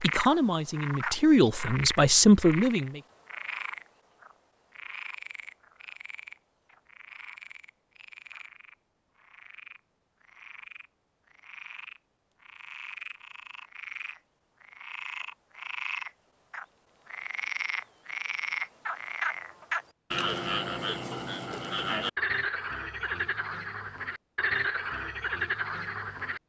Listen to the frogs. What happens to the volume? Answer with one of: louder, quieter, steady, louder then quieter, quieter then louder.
quieter then louder.